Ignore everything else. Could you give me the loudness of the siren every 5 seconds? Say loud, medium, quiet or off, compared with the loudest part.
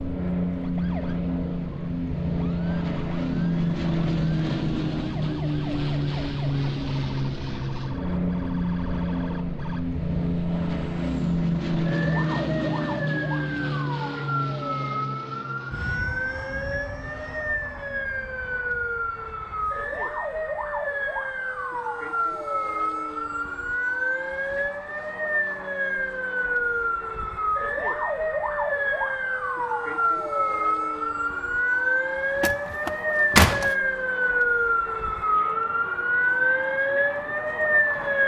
quiet, quiet, medium, medium, medium, loud, loud, loud.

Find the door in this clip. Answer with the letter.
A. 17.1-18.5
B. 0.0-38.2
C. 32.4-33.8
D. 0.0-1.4
C.